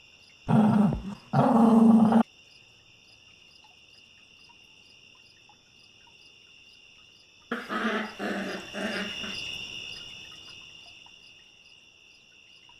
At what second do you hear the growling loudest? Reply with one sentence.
The volume of the growling peaks at 2 seconds.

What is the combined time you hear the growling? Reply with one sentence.
You can hear the growling for 4 seconds altogether.